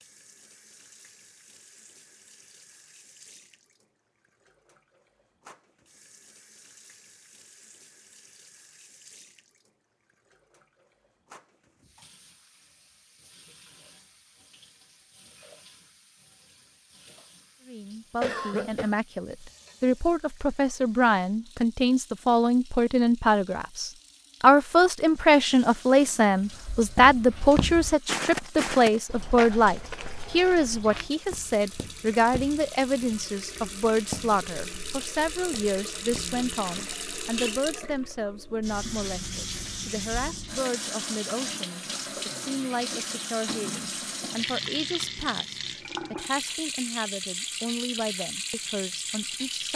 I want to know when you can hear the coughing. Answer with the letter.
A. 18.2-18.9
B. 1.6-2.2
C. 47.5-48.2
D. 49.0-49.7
A.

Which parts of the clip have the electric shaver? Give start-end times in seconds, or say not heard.
not heard.